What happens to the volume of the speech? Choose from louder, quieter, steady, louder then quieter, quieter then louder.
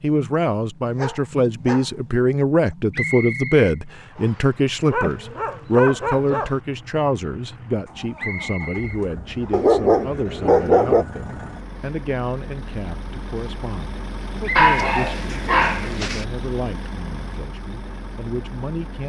quieter.